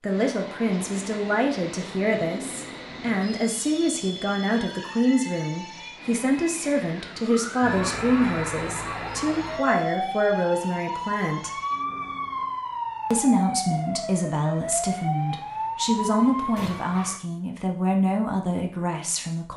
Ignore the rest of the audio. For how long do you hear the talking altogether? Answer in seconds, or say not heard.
18 s.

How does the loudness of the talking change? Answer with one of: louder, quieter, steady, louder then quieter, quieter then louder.
steady.